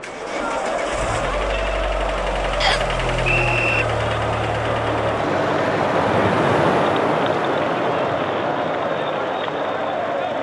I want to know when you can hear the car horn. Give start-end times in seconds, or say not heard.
not heard.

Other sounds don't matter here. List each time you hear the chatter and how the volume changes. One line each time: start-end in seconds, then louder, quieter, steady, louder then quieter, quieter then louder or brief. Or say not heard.
0.0-10.3 steady.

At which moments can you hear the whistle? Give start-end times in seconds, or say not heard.
2.6-3.9.